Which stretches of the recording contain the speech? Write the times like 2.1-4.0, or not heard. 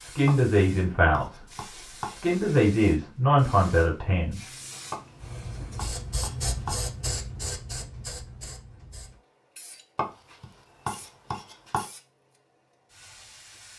0.0-1.4, 2.1-4.4.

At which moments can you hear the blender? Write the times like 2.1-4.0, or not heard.
not heard.